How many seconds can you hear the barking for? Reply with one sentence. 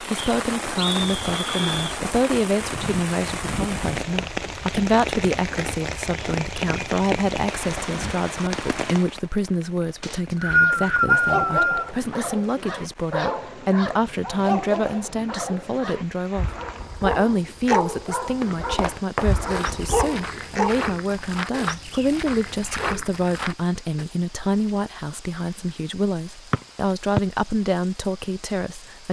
You can hear the barking for 10 seconds altogether.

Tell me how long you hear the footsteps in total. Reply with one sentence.
The footsteps can be heard for 6 seconds in total.